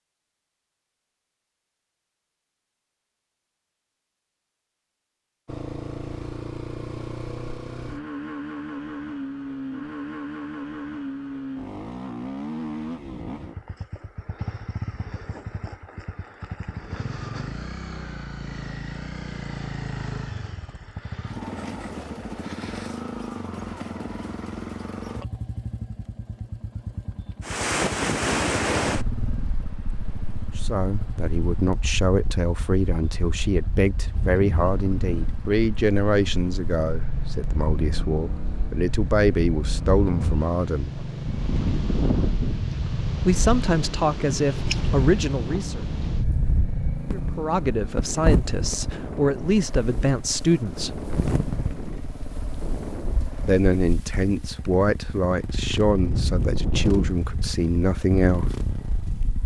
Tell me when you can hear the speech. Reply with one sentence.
You can hear the speech from 30.6 to 41.0 s, from 43.2 to 45.8 s, from 47.1 to 51.0 s and from 53.4 to 58.5 s.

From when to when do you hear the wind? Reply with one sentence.
You can hear the wind from 27.4 to 59.4 s.